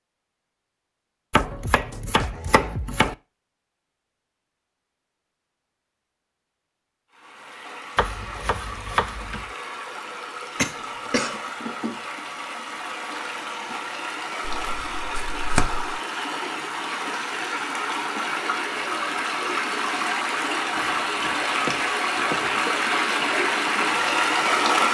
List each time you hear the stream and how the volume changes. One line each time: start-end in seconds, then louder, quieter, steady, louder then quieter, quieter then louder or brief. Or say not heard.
7.1-24.8 louder.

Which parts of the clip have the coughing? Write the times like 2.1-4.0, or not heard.
10.6-11.5.